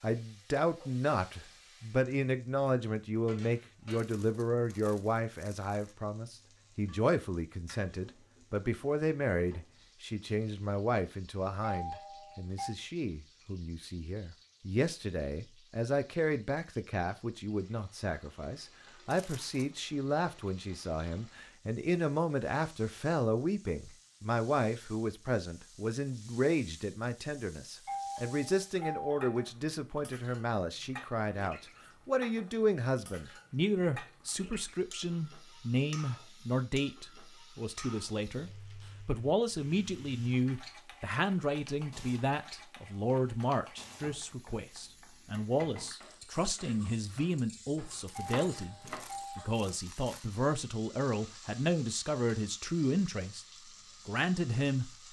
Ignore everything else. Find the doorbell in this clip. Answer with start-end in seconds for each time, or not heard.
11.6-12.8, 27.9-29.4, 48.1-49.5.